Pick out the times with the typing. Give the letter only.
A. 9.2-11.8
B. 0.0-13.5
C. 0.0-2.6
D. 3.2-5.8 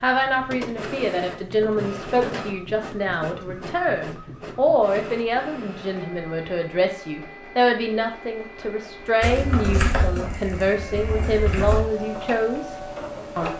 A.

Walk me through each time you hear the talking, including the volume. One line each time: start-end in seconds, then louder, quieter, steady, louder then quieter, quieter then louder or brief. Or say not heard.
0.0-13.5 steady.